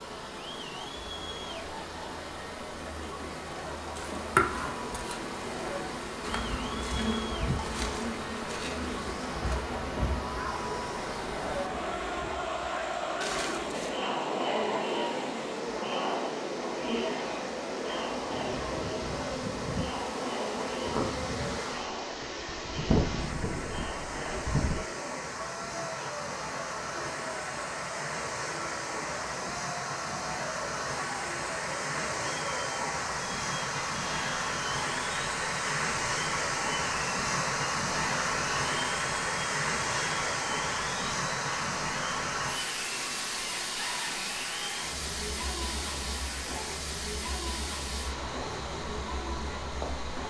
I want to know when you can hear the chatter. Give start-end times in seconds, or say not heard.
0.0-50.2.